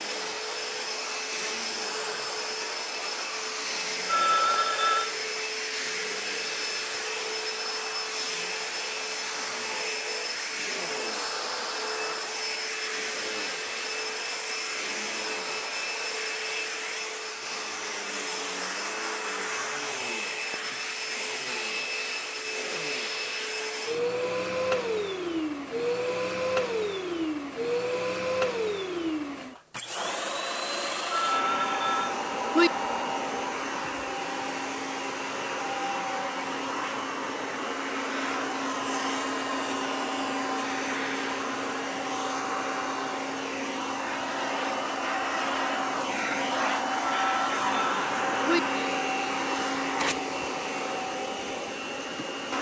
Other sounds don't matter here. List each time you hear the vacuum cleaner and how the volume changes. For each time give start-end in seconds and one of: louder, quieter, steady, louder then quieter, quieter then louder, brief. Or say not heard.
0.0-52.5 steady.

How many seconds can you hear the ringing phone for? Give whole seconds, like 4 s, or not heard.
4 s.